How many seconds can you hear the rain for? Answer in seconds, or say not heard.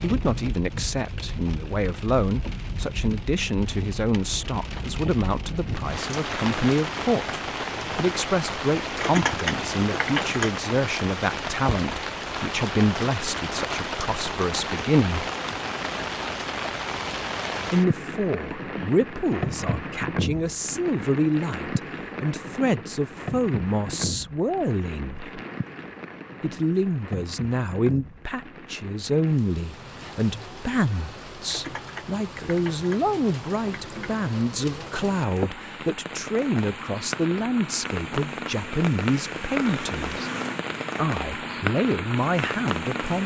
43 s.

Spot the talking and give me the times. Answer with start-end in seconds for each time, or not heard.
0.0-15.2, 17.7-25.4, 26.4-40.3, 41.0-43.2.